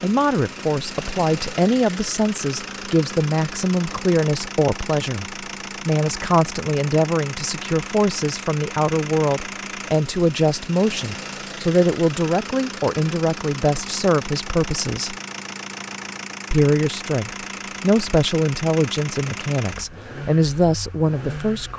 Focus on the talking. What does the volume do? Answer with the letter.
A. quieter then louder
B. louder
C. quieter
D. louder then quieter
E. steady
E.